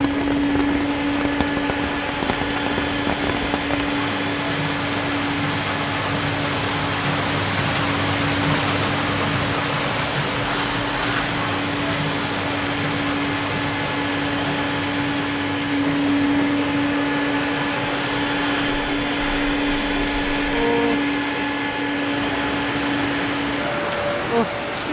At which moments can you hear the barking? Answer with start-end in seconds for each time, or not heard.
not heard.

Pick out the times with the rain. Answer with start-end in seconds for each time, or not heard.
0.0-24.8.